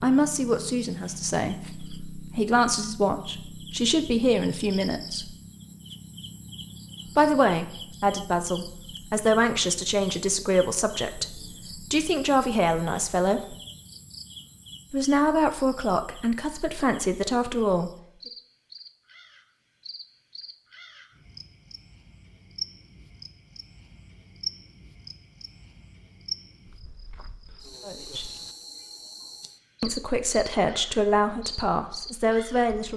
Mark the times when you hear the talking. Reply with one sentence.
You can hear the talking from 0.0 to 5.3 s, from 7.2 to 13.6 s, from 14.9 to 17.9 s, from 27.9 to 28.3 s and from 29.8 to 32.9 s.